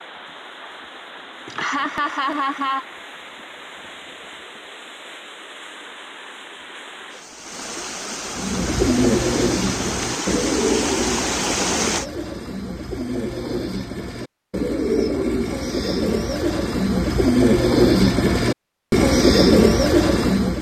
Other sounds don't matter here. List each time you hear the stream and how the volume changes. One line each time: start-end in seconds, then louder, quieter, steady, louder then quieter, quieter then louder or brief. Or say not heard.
0.0-12.1 louder.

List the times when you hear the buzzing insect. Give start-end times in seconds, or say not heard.
not heard.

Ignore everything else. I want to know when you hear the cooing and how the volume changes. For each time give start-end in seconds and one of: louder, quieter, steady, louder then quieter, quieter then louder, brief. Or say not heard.
8.3-20.5 quieter then louder.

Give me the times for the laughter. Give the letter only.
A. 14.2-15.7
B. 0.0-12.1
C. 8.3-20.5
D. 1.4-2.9
D.